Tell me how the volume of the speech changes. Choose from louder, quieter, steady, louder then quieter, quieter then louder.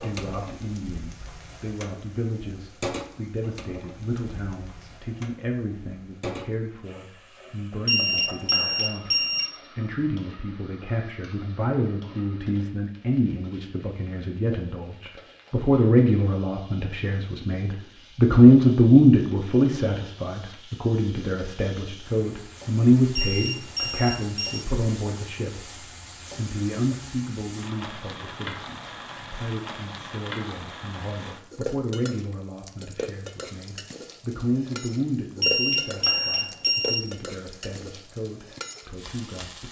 louder then quieter.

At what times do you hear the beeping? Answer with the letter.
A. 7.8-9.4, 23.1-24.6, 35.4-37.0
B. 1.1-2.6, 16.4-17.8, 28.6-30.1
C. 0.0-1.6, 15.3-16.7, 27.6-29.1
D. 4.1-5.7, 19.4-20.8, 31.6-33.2
A.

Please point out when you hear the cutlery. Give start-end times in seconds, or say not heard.
not heard.